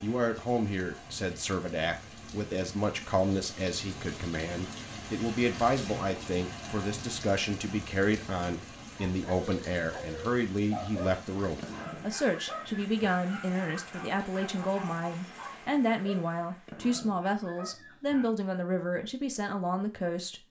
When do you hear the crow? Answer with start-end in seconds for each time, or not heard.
not heard.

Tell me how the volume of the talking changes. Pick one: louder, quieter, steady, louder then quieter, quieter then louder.
steady.